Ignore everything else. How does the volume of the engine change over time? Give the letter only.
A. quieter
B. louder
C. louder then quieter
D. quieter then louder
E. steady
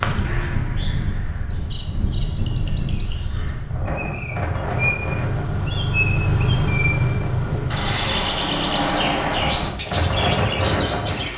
B.